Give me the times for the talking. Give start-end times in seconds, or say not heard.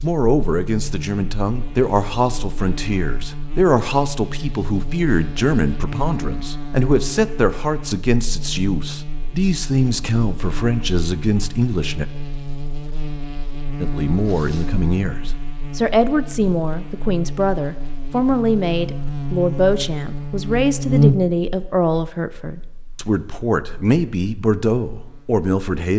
0.0-12.1, 13.8-25.9.